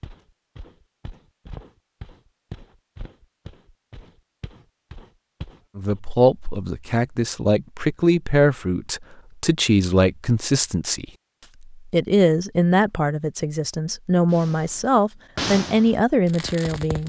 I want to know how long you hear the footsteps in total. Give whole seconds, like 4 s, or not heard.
6 s.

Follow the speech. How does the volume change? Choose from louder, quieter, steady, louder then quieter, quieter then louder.
steady.